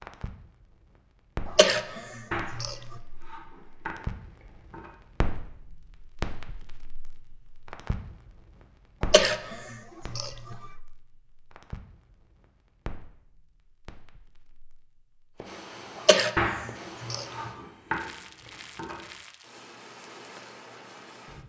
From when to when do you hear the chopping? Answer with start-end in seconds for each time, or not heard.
2.3-4.9, 16.4-19.1.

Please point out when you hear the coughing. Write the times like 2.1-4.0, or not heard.
1.4-2.8, 9.0-10.6, 15.9-17.5.